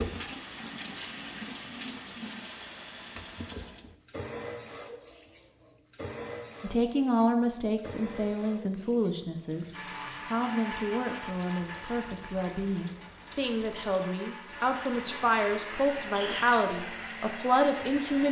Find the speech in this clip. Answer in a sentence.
The speech can be heard from 6.6 to 9.7 s and from 10.2 to 18.2 s.